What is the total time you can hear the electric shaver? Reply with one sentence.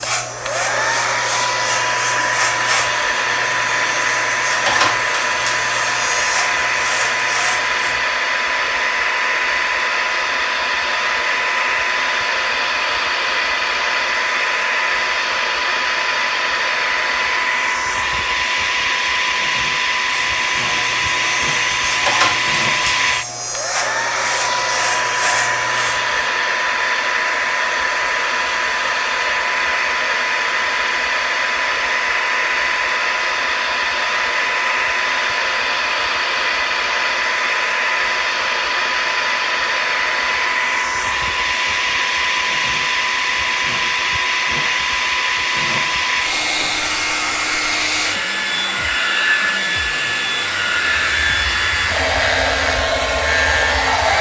You can hear the electric shaver for 17 seconds altogether.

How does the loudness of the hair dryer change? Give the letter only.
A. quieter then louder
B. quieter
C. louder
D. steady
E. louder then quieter
D.